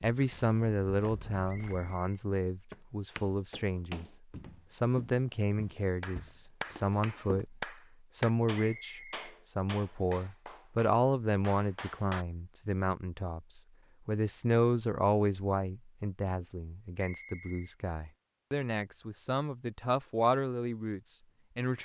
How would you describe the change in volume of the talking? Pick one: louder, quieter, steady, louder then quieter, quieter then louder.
steady.